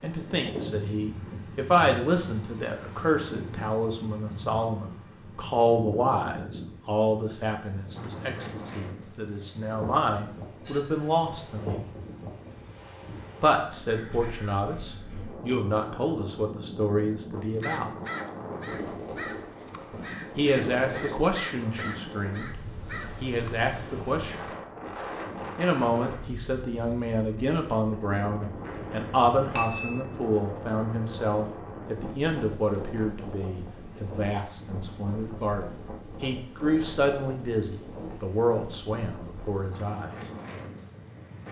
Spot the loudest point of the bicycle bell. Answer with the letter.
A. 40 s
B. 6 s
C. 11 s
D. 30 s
C.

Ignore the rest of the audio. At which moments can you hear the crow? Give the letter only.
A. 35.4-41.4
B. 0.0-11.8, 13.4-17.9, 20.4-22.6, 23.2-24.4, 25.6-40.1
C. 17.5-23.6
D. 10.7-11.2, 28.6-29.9
C.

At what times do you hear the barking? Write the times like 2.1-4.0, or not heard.
not heard.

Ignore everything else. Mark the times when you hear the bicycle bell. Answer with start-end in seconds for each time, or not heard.
10.7-11.2, 28.6-29.9.